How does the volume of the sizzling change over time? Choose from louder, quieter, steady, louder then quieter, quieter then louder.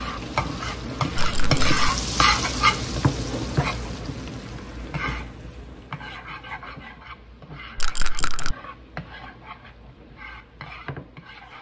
quieter.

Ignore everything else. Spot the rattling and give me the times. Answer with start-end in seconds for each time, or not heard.
1.1-1.8, 7.8-8.6.